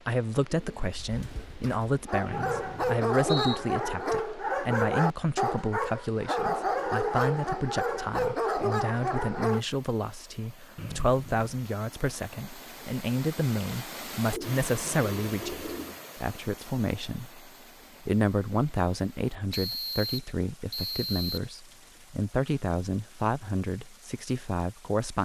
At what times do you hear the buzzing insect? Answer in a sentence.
You can't hear the buzzing insect here.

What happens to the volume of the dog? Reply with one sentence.
The loudness of the dog stays about the same.